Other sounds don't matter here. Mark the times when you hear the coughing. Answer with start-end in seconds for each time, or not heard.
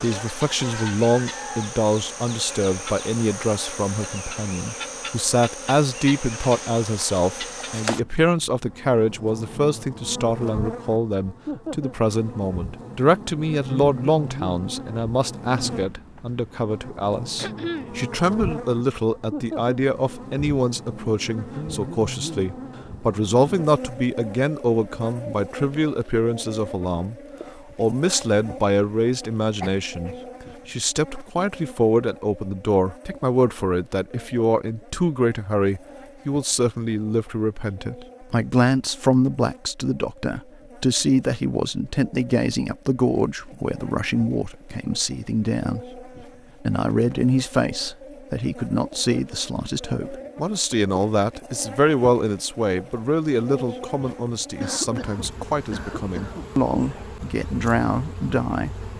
17.4-17.9, 29.6-30.3, 54.6-56.5.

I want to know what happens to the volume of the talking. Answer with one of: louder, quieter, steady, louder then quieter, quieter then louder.
steady.